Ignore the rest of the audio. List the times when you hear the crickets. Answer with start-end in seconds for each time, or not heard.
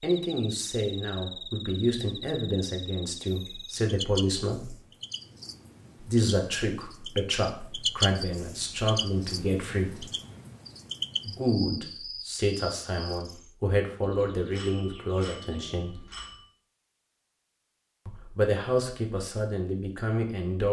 0.0-13.5.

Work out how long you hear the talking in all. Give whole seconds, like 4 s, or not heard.
16 s.